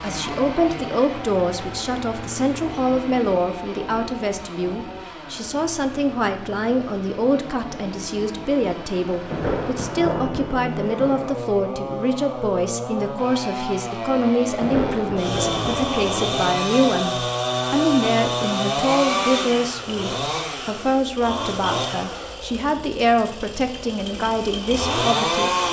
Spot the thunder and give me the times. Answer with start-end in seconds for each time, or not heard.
9.3-11.3, 14.6-16.6.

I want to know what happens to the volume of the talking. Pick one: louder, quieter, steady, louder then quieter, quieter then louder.
steady.